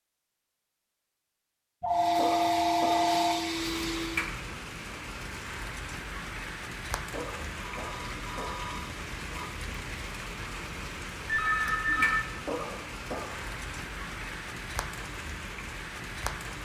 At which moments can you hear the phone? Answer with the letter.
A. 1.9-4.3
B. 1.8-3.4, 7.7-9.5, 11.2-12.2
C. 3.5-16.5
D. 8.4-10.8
B.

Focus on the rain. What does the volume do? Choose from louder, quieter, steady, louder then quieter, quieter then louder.
steady.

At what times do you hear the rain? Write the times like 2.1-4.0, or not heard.
3.5-16.5.